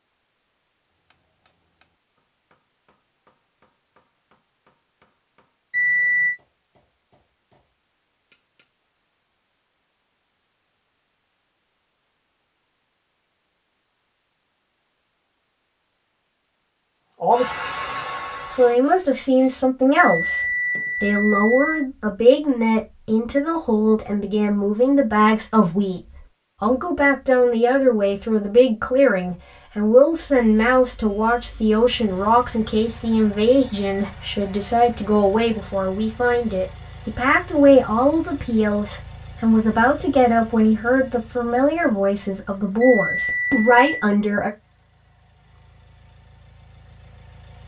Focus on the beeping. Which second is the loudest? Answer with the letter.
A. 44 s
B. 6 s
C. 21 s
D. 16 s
B.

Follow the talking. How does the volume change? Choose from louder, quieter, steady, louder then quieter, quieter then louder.
steady.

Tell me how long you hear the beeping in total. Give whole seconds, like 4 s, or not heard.
4 s.